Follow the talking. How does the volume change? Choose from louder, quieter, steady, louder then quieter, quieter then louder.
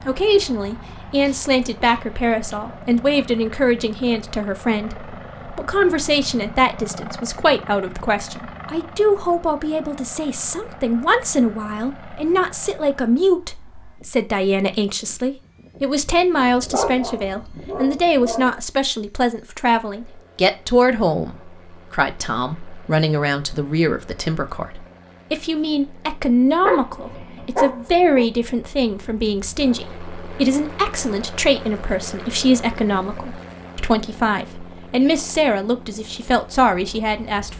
steady.